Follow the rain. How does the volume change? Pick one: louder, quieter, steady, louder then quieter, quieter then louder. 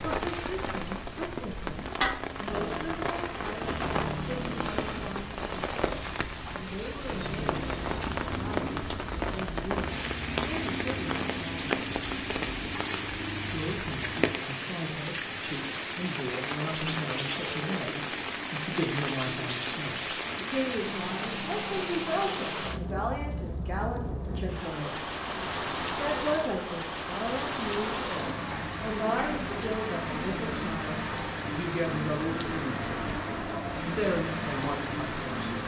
steady.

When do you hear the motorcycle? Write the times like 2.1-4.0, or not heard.
2.5-5.1, 7.0-14.3.